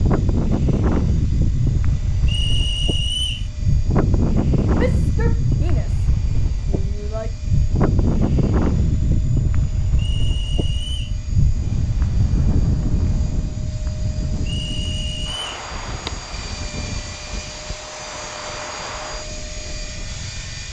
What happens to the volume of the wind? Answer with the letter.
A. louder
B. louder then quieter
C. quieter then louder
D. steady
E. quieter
E.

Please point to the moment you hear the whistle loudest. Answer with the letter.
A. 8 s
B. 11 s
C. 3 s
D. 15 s
C.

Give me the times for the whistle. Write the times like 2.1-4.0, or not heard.
2.2-3.5, 9.9-11.2, 14.4-15.4.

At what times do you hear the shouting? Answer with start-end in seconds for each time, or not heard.
4.8-7.3.